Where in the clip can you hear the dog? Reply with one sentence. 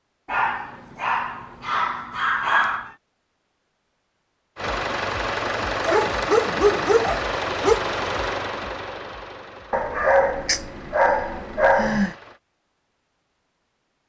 You can hear the dog from 0.2 to 2.9 s, from 5.8 to 7.8 s and from 9.7 to 12.2 s.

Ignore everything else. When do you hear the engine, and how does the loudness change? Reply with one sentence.
You can hear the engine from 4.5 to 12.4 s, getting quieter.